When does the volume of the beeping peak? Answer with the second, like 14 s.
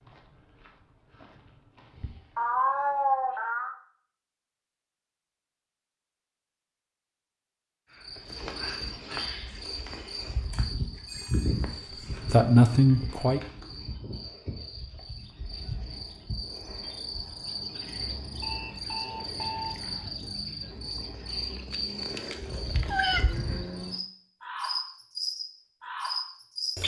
20 s.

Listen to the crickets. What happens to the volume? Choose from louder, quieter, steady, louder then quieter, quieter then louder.
quieter then louder.